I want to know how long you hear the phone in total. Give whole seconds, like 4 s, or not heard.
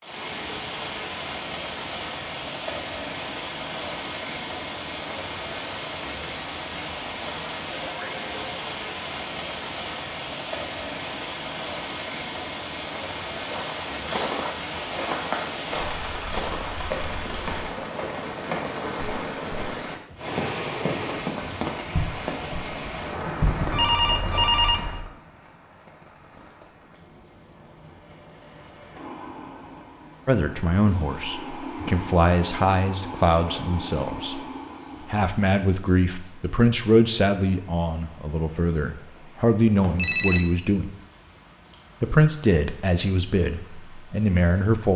3 s.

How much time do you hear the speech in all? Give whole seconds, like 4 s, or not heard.
13 s.